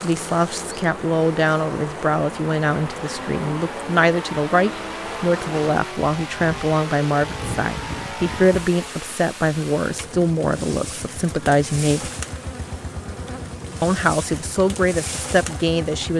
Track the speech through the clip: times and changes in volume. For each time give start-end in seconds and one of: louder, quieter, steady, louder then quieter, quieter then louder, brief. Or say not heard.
0.0-12.1 steady
13.8-16.1 brief.